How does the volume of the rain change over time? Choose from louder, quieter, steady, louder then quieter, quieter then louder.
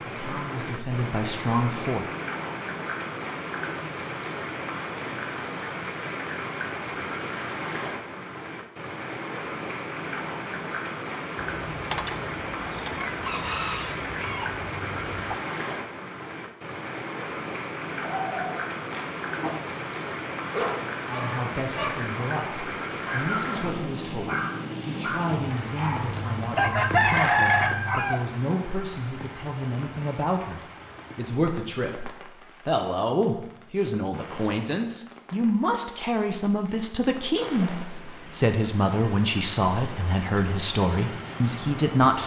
quieter.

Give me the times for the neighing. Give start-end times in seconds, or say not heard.
not heard.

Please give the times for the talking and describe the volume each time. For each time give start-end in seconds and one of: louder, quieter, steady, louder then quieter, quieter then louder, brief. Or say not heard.
0.0-2.0 brief
21.1-42.2 louder.